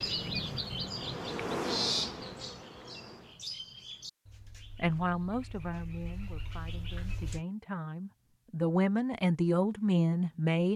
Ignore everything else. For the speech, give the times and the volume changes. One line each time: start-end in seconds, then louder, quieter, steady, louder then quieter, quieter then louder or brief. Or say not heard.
4.8-10.7 quieter then louder.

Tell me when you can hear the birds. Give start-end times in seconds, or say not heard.
0.0-7.4.